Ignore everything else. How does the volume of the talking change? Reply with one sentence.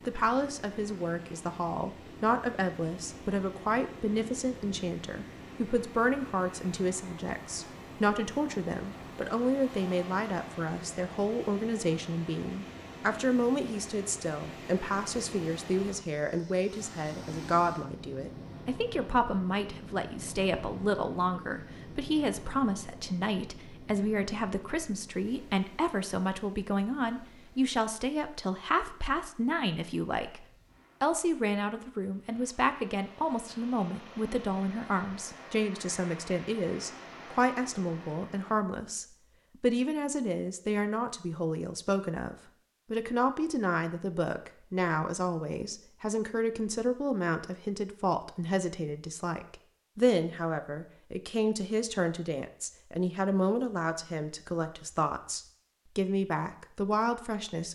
The loudness of the talking stays about the same.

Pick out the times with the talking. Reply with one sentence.
You can hear the talking from 0.1 to 57.7 s.